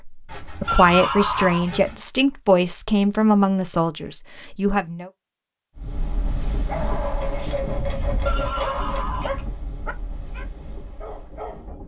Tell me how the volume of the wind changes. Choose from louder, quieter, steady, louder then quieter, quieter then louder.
quieter.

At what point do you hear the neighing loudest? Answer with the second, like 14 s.
1 s.